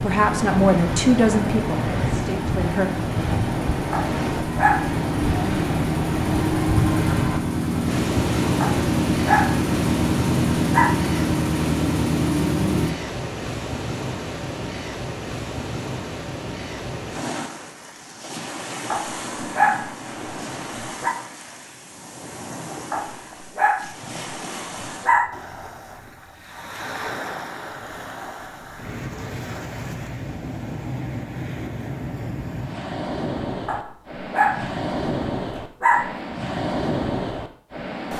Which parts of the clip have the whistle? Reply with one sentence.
You can't hear the whistle here.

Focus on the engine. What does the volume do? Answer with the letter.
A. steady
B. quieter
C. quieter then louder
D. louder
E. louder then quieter
D.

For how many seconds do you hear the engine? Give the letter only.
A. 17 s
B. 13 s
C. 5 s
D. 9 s
B.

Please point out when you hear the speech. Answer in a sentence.
You can hear the speech from 0.0 to 2.9 s.